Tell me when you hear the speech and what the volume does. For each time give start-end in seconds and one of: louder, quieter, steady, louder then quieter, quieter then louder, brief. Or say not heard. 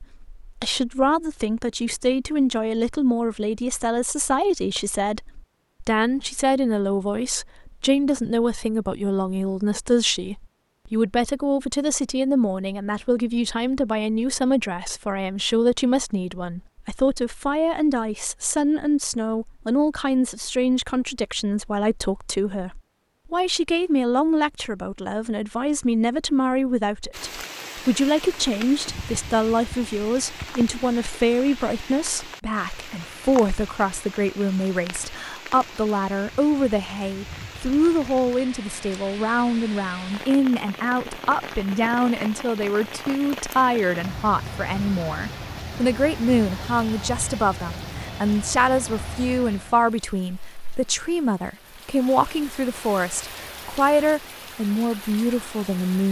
0.0-56.0 steady.